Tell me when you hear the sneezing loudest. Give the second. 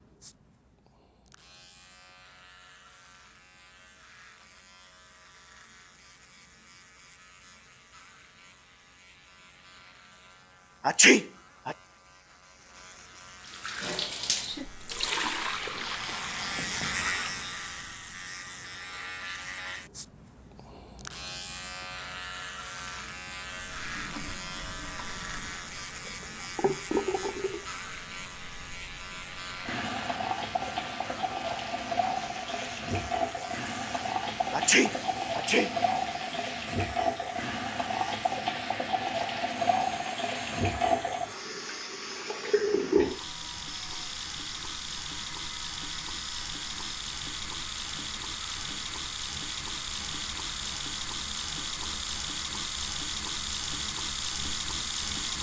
11 s.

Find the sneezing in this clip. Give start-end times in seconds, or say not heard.
10.8-11.8, 34.5-35.7.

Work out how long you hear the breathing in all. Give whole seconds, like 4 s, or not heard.
not heard.